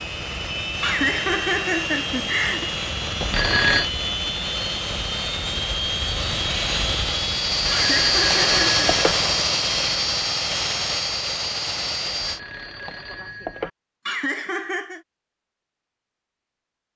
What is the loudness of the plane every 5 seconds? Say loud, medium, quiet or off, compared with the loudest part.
medium, loud, loud, off.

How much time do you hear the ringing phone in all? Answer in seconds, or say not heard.
4 s.